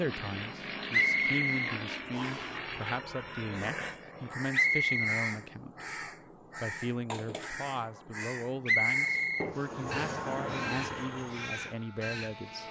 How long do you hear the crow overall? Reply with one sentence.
The crow can be heard for 9 seconds in total.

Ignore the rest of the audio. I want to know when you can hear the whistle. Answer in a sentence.
The whistle can be heard from 0.9 to 2.5 s, from 4.5 to 5.3 s and from 8.7 to 10.2 s.